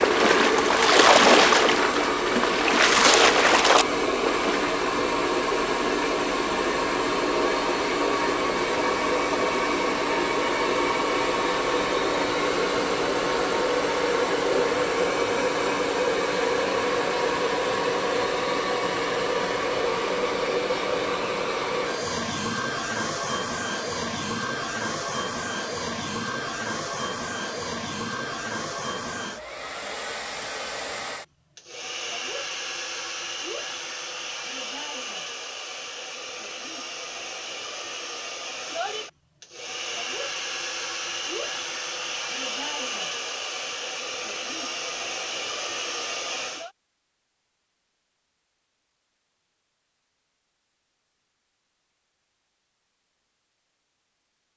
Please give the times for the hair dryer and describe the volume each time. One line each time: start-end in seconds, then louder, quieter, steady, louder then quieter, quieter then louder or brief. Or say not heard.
0.0-46.7 quieter.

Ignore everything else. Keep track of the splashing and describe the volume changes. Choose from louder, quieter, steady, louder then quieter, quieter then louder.
quieter then louder.